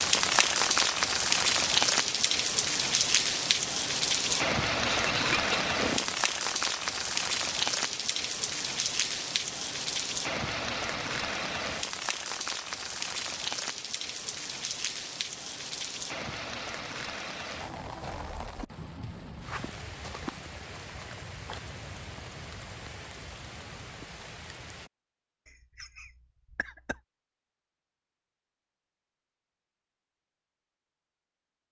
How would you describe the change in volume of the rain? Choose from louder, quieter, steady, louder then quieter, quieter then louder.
quieter.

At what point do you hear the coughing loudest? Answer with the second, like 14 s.
5 s.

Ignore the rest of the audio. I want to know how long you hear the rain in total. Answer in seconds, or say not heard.
25 s.